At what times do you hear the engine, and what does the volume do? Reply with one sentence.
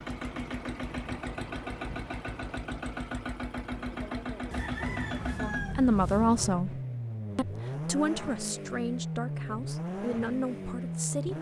The engine can be heard from 0.0 to 11.3 s, at a steady volume.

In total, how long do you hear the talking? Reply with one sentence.
You can hear the talking for 6 seconds altogether.